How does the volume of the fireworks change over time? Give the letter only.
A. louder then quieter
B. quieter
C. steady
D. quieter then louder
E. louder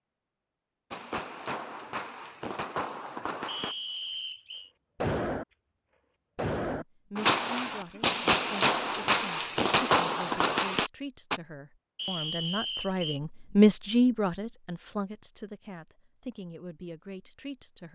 E.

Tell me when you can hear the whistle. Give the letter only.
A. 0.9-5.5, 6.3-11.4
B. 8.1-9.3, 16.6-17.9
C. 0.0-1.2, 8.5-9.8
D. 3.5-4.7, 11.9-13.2
D.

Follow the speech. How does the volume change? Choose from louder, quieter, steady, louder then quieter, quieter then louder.
louder then quieter.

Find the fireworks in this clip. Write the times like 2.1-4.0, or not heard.
0.9-5.5, 6.3-11.4.